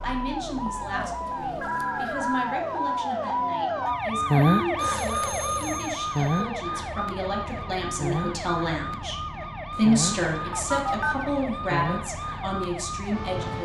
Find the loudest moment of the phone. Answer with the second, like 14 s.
11 s.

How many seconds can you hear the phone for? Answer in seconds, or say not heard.
4 s.